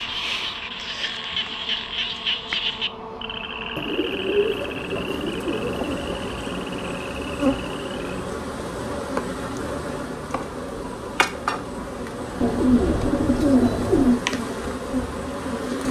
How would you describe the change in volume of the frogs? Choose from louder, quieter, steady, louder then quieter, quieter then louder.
quieter.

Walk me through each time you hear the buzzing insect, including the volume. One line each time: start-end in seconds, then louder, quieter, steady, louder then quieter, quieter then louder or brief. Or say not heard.
0.0-15.8 louder.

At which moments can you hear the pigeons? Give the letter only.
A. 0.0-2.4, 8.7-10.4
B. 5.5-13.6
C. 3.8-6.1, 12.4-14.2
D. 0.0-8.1
C.